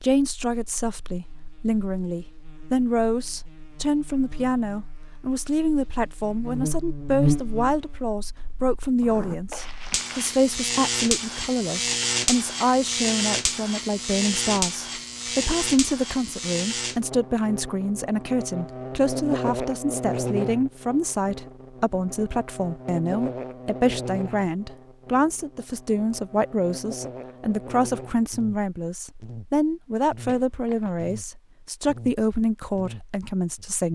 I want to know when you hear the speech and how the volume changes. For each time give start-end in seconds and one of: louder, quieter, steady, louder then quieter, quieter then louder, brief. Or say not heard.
0.0-33.9 steady.